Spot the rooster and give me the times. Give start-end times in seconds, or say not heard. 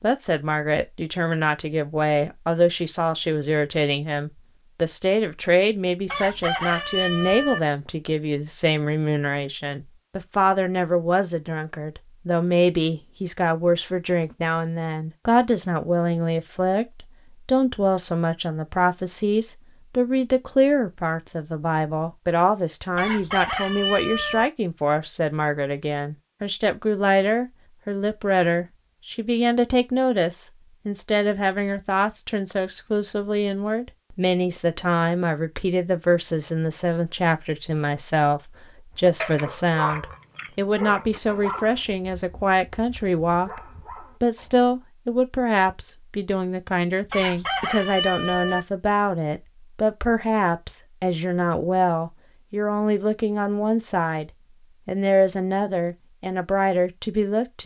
6.0-7.6, 22.9-24.5, 47.0-48.6.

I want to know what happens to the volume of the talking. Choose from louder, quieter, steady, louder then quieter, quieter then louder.
steady.